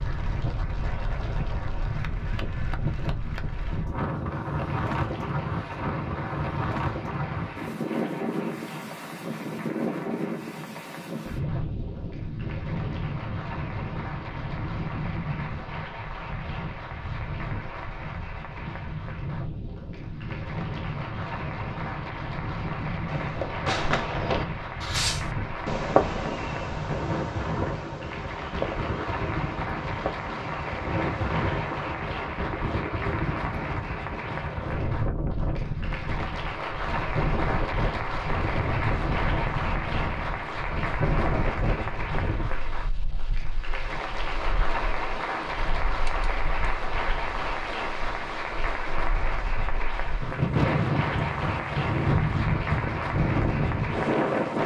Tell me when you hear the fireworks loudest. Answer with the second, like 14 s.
26 s.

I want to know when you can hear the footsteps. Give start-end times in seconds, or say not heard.
not heard.